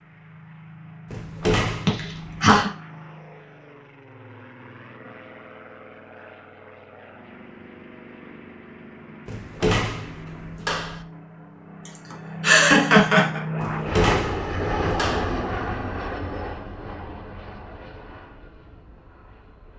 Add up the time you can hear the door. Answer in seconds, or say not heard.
5 s.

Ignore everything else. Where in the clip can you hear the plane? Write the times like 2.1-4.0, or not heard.
0.0-19.7.